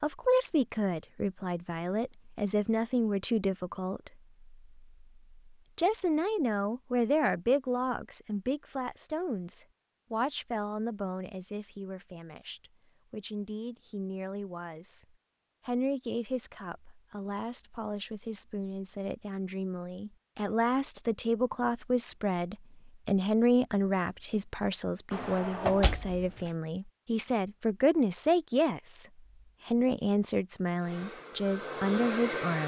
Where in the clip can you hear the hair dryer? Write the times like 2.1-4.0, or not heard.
30.8-32.6.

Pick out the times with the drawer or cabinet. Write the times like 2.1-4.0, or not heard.
25.1-26.5.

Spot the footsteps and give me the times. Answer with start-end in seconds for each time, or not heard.
not heard.